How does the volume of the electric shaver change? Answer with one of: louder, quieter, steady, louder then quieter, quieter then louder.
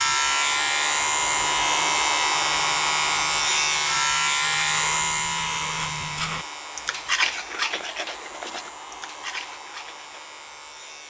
quieter.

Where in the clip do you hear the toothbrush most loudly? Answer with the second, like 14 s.
7 s.